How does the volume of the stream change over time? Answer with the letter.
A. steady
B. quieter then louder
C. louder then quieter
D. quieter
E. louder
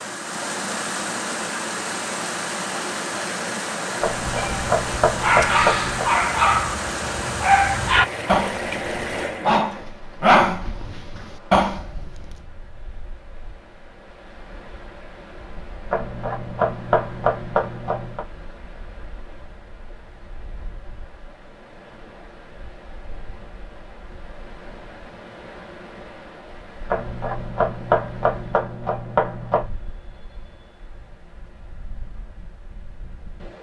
D.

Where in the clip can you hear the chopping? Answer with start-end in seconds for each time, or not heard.
4.0-6.1, 15.9-18.2, 26.9-29.6.